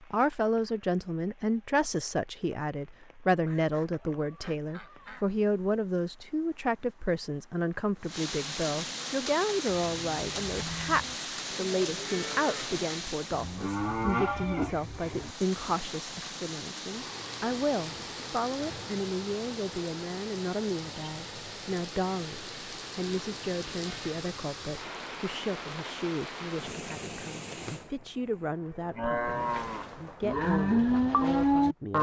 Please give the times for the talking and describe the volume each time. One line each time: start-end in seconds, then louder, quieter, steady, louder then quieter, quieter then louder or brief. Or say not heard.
0.1-31.9 quieter.